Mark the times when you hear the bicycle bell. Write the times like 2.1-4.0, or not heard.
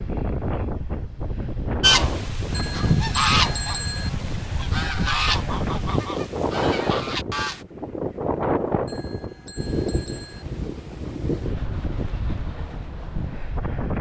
2.5-4.1, 8.8-10.4.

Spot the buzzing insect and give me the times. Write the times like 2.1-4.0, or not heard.
not heard.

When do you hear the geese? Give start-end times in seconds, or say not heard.
1.8-7.7.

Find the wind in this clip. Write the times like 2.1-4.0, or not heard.
0.0-13.9.